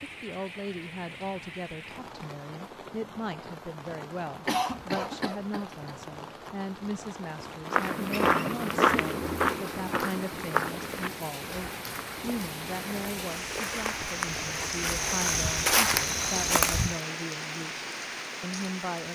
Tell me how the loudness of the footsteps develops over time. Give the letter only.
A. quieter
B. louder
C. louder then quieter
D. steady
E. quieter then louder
E.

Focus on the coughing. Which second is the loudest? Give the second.
5 s.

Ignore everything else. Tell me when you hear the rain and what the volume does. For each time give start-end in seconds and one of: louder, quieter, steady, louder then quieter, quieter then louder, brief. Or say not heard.
0.0-19.1 louder.